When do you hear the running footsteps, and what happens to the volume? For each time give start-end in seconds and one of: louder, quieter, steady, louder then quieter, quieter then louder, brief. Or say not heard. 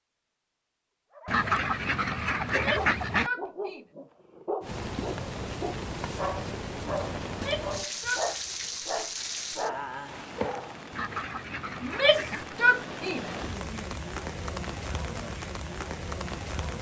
not heard.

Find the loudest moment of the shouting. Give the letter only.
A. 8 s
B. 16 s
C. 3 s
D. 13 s
D.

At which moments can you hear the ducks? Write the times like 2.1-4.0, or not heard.
1.2-3.3, 10.9-12.6.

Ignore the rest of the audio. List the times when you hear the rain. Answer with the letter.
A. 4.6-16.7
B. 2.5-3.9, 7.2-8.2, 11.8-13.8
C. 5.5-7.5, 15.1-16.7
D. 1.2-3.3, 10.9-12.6
A.